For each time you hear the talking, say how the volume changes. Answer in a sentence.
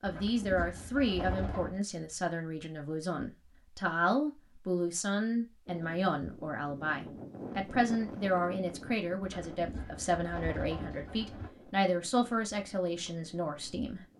The talking can be heard from 0.0 to 14.0 s, at a steady volume.